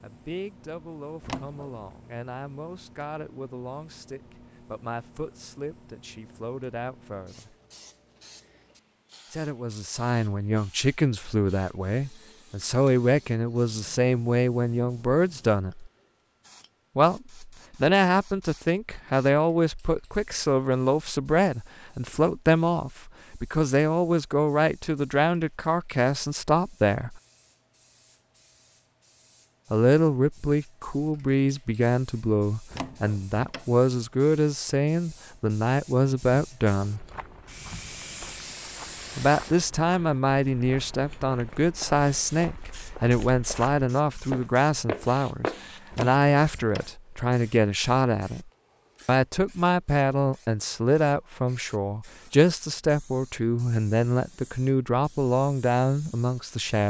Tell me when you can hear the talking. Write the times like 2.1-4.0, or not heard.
0.0-7.5, 9.3-15.9, 16.9-27.2, 29.7-37.0, 39.1-56.8.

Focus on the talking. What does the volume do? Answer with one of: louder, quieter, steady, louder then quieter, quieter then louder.
louder.